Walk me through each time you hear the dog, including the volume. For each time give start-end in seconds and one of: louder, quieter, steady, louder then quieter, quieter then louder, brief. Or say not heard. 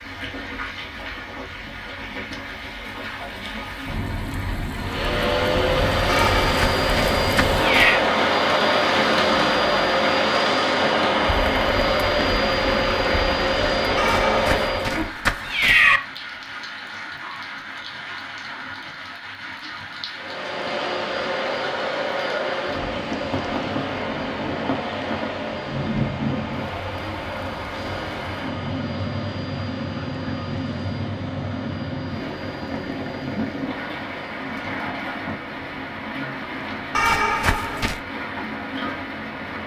not heard.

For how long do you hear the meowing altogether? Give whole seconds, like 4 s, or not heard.
5 s.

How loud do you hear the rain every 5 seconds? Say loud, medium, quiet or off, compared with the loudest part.
medium, loud, loud, medium, medium, medium, medium, medium.